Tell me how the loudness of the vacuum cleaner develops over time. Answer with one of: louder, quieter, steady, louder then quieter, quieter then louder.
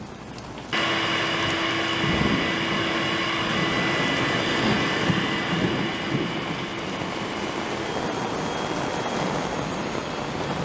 quieter.